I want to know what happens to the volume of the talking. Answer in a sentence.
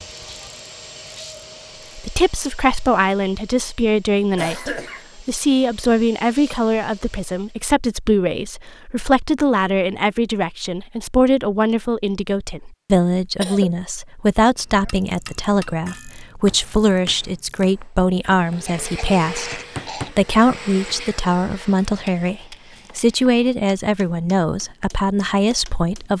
The volume of the talking stays about the same.